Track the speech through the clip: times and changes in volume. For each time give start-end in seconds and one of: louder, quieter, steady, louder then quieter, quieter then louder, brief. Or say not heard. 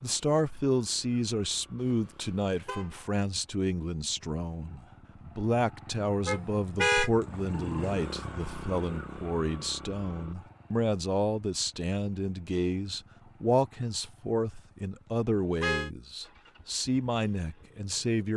0.0-18.3 steady.